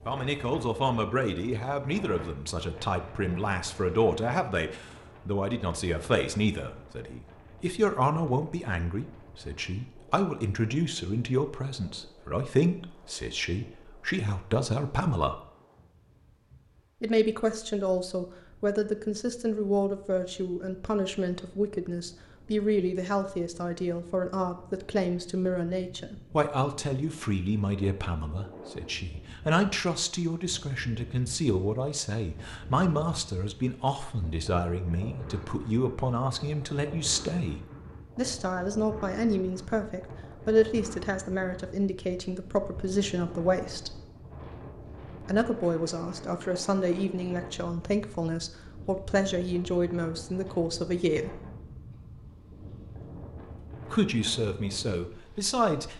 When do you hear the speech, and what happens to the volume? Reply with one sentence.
The speech can be heard from 0.1 to 15.4 s, at a steady volume; from 17.0 to 44.0 s, at a steady volume; from 45.2 to 51.4 s, at a steady volume; and briefly from 53.9 to 55.9 s.